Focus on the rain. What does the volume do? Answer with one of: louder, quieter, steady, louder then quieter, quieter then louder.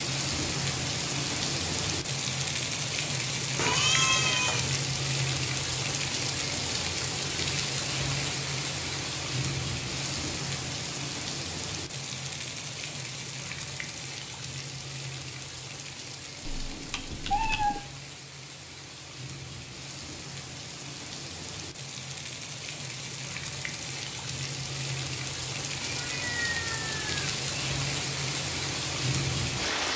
quieter then louder.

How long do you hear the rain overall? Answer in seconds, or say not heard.
30 s.